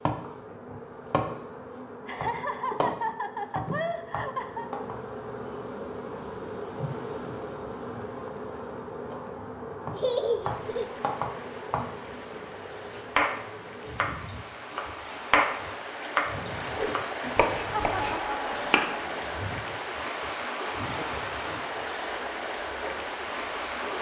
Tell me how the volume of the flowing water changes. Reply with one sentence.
The volume of the flowing water goes up.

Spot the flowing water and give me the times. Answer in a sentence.
The flowing water can be heard from 10.4 to 23.9 s.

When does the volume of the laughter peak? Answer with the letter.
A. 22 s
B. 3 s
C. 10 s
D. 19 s
C.